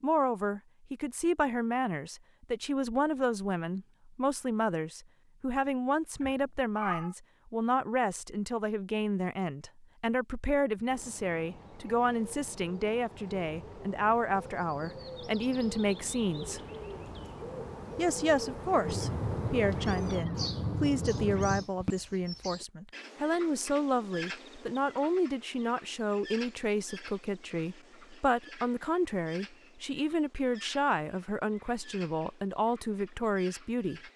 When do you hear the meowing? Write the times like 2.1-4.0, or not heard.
6.2-7.2, 18.9-21.6.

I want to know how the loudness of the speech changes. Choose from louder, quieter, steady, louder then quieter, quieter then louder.
steady.